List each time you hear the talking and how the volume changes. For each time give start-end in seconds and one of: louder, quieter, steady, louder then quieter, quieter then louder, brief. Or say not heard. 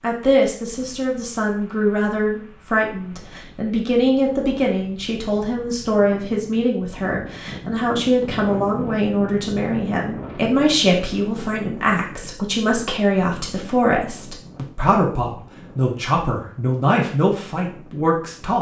0.0-18.5 steady.